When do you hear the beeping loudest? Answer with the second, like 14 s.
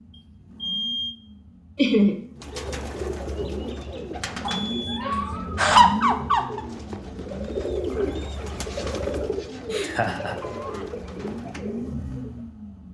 1 s.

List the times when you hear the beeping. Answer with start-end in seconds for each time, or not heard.
0.1-1.2, 4.5-5.0, 10.4-10.8.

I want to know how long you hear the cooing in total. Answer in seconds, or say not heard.
10 s.